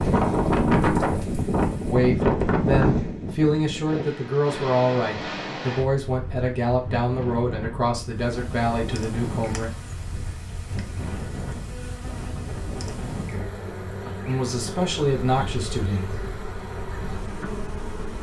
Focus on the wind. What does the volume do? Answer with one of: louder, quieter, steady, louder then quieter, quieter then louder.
quieter.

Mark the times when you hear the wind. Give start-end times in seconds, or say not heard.
0.0-18.1.